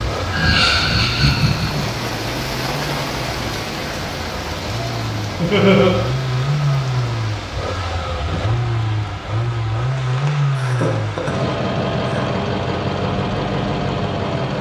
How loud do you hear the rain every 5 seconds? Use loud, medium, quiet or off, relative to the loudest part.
loud, medium, medium.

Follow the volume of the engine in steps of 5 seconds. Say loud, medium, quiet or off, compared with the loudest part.
medium, loud, loud.